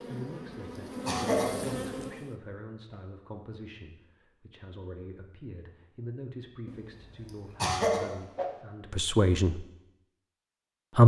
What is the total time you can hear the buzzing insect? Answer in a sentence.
You can hear the buzzing insect for 2 seconds altogether.